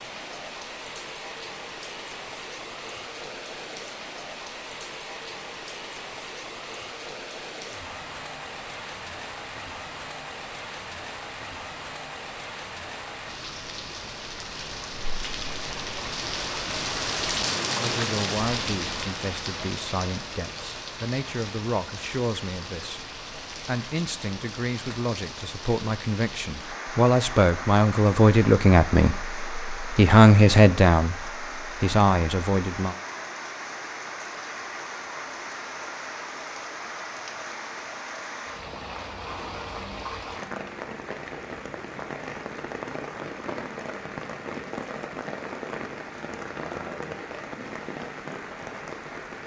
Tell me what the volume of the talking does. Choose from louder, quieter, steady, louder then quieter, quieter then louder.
louder.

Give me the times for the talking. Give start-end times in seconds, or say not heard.
17.8-33.0.